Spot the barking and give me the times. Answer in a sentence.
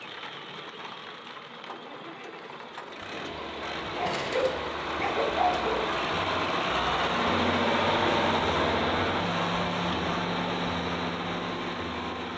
The barking can be heard from 3.9 to 5.9 s.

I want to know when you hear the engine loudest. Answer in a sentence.
The volume of the engine peaks at 8 seconds.